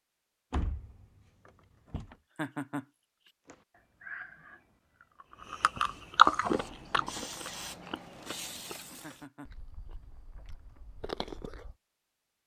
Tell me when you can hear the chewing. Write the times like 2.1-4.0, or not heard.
3.5-11.8.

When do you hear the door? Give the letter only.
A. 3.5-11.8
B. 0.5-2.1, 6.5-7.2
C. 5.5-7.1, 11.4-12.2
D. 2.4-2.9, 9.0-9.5
B.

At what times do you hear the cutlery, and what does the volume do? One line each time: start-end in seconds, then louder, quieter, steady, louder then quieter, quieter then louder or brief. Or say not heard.
not heard.